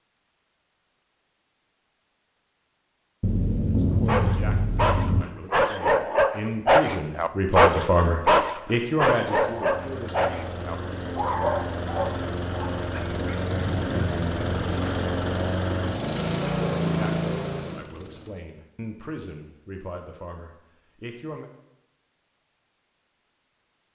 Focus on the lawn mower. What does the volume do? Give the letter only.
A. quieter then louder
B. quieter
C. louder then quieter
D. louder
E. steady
D.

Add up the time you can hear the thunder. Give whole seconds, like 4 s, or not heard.
2 s.